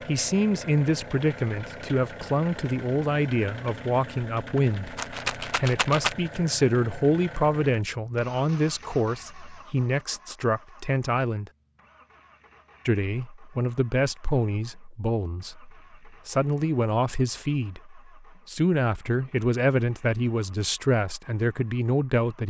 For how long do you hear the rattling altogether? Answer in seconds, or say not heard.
2 s.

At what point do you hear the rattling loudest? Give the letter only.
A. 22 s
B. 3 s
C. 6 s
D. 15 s
C.